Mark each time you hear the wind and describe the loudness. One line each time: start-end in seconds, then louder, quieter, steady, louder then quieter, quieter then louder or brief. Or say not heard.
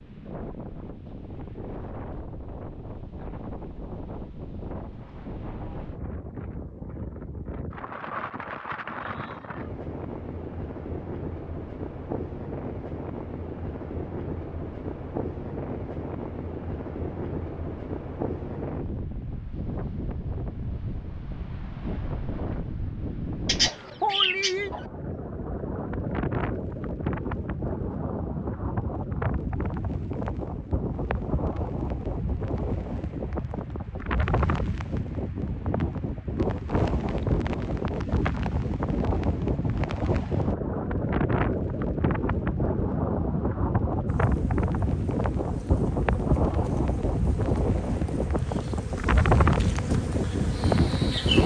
0.0-51.4 louder.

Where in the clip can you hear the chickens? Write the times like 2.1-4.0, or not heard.
23.4-24.9.